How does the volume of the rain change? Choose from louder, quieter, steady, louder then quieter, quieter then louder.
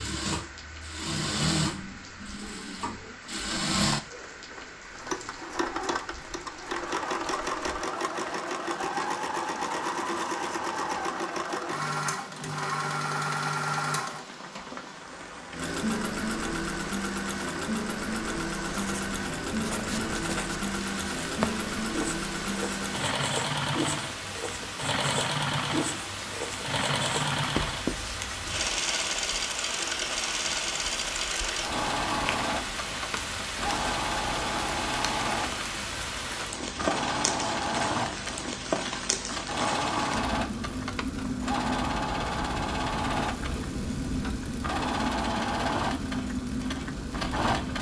louder.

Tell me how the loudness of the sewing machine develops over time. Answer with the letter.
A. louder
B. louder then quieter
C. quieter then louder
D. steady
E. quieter
D.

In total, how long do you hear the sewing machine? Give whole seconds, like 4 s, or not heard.
48 s.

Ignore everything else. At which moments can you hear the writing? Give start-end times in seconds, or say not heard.
18.6-28.8.